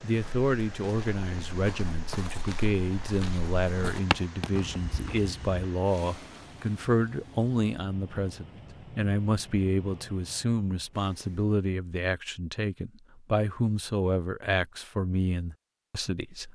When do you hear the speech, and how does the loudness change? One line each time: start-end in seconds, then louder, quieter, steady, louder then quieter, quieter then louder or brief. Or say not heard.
0.0-16.4 steady.